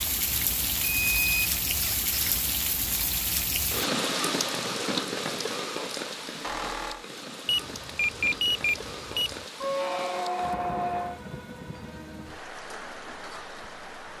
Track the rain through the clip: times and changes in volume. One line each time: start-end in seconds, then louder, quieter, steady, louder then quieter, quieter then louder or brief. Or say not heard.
0.0-14.1 quieter.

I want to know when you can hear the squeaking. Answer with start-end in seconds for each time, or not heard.
1.8-2.5, 6.4-7.0, 9.6-11.2.